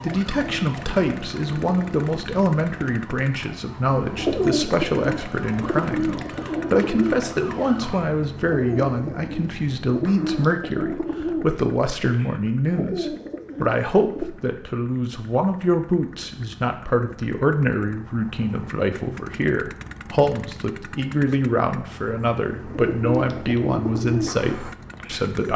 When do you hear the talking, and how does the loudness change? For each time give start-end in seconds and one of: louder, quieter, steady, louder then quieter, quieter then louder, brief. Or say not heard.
0.0-25.5 steady.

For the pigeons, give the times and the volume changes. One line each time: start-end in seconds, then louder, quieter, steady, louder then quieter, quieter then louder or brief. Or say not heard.
4.2-14.2 quieter
22.6-25.5 brief.